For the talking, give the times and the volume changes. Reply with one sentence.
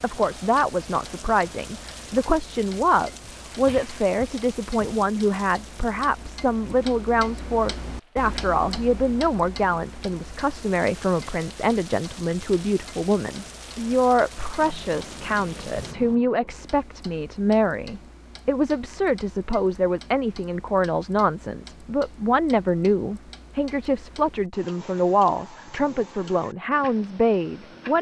You can hear the talking from 0.0 to 27.9 s, at a steady volume.